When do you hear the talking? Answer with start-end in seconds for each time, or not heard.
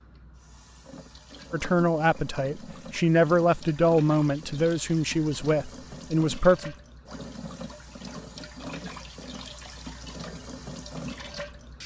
1.5-6.8.